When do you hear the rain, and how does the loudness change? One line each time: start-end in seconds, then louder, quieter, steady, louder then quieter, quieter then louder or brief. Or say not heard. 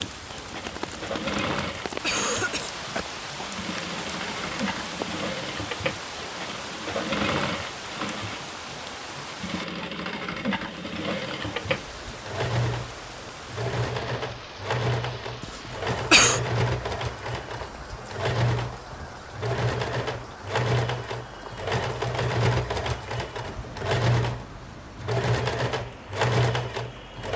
0.0-27.3 quieter.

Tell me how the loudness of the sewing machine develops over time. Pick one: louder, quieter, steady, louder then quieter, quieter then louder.
louder.